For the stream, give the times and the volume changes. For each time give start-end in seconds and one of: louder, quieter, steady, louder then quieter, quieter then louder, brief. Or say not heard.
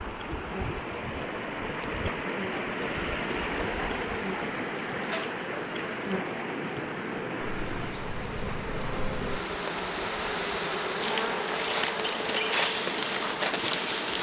0.0-14.1 quieter.